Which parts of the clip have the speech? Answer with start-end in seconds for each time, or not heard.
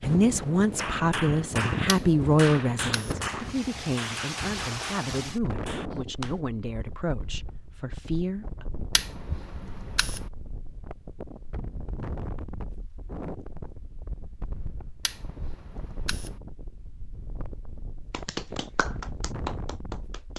0.0-8.7.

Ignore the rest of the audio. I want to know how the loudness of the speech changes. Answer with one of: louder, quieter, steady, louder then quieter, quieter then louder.
quieter.